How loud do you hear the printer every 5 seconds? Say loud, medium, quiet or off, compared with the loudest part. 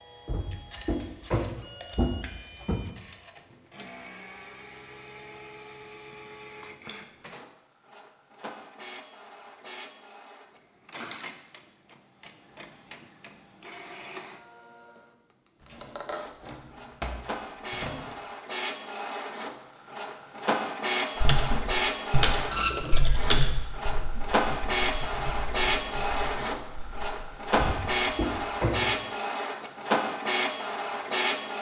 quiet, quiet, quiet, medium, loud, loud, loud.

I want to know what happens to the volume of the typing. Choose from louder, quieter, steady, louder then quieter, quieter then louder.
quieter.